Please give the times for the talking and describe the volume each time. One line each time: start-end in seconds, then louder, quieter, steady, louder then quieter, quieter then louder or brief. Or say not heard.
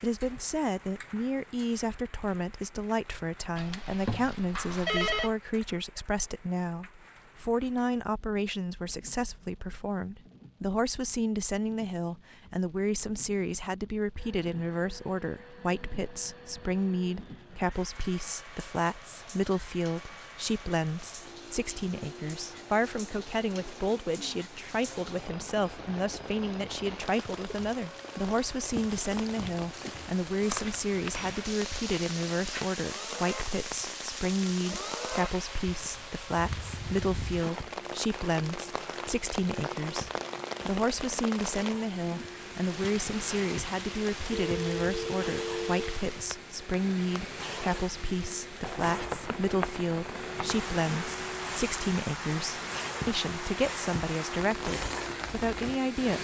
0.0-56.1 steady.